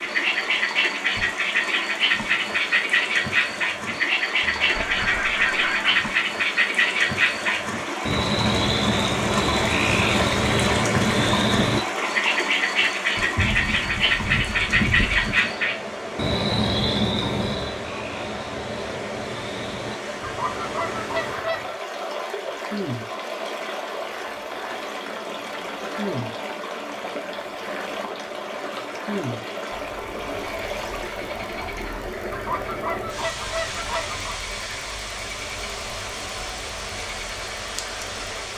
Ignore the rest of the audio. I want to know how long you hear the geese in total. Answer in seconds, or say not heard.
7 s.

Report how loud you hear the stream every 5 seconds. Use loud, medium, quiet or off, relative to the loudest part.
medium, loud, loud, medium, medium, medium, medium, medium.